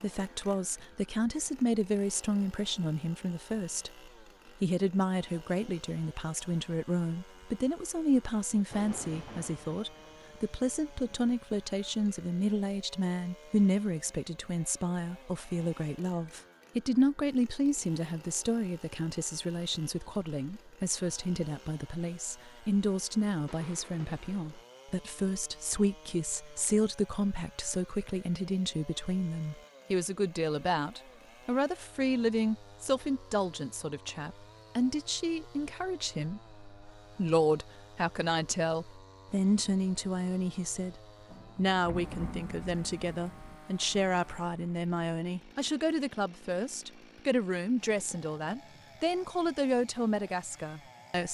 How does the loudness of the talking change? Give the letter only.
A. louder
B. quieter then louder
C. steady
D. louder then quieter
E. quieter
C.